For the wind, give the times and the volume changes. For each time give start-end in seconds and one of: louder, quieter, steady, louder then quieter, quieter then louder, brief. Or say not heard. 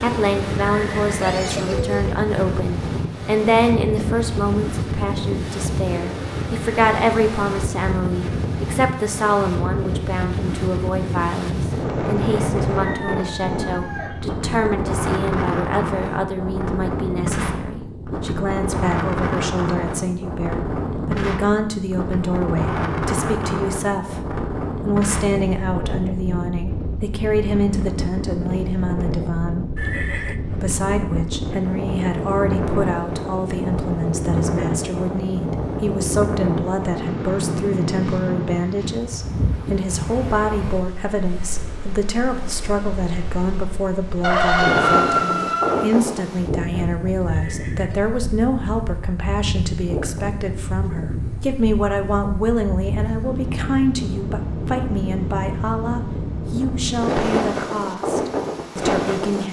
0.0-59.4 steady.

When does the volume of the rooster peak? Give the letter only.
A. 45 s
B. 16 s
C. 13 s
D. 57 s
A.